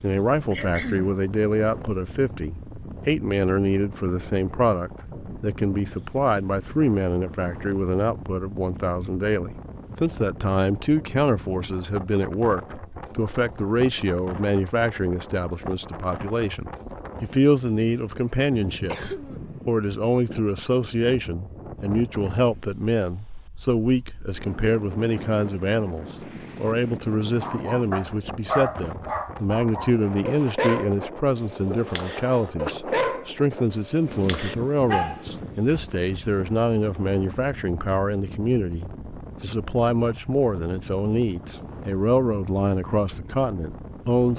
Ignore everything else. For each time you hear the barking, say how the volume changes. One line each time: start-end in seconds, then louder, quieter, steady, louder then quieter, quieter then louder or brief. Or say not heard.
27.4-36.0 quieter then louder.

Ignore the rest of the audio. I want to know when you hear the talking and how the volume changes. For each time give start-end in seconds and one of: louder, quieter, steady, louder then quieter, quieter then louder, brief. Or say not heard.
0.0-44.3 steady.